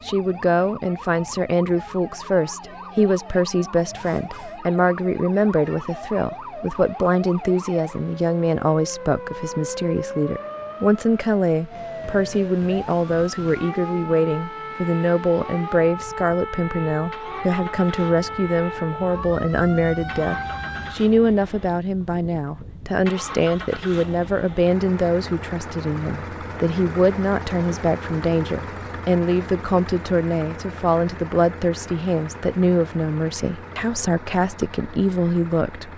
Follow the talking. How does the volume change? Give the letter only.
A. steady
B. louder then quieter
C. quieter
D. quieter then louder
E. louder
A.